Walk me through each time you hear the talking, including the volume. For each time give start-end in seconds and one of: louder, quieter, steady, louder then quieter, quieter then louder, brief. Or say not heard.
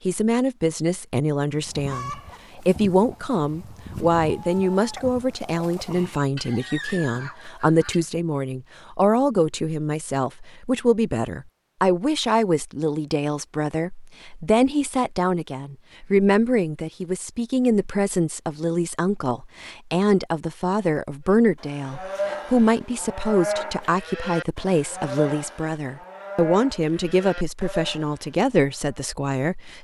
0.1-29.7 steady.